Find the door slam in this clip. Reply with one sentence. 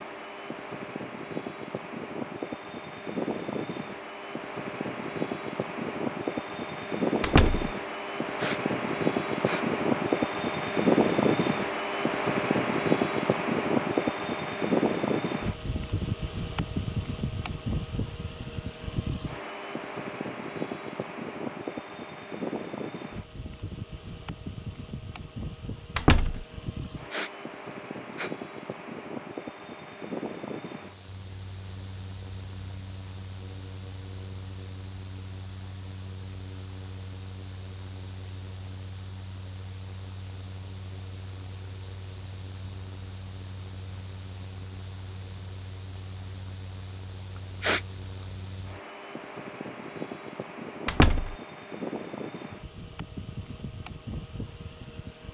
You can hear the door slam from 7.2 to 7.7 s, from 25.9 to 26.4 s and from 50.9 to 51.4 s.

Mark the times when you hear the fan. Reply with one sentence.
You can hear the fan from 0.0 to 55.3 s.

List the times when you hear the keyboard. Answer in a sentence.
The keyboard can't be heard in this clip.